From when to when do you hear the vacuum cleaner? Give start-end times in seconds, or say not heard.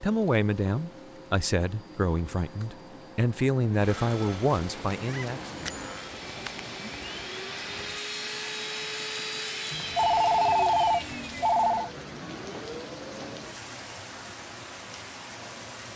0.0-13.6.